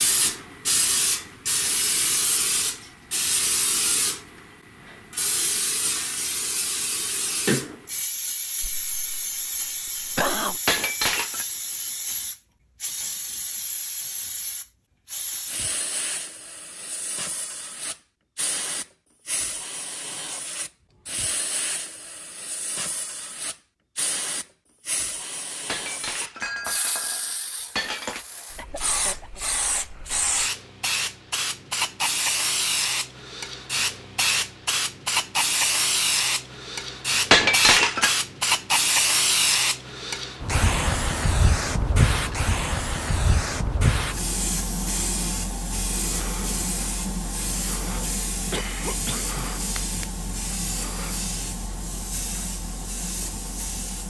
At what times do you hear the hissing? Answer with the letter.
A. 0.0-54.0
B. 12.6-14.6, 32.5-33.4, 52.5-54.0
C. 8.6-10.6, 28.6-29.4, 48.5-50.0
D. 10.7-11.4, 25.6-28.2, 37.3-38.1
A.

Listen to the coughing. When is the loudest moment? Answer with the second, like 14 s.
10 s.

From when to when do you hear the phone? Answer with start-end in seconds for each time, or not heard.
not heard.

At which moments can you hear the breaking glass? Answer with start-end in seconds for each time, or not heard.
10.7-11.4, 25.6-28.2, 37.3-38.1.